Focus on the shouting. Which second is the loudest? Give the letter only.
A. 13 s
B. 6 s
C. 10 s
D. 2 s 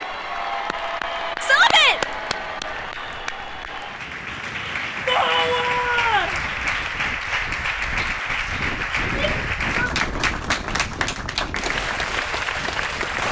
D.